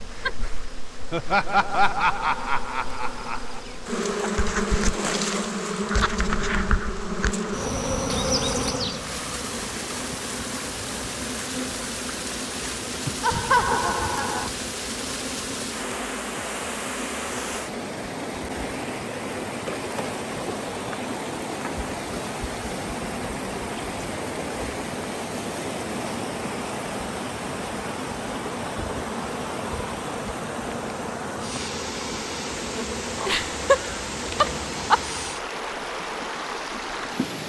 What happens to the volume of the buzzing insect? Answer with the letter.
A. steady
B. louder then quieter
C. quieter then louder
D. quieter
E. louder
D.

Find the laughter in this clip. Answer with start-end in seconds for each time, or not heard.
1.1-3.6, 13.2-14.5, 33.2-35.0.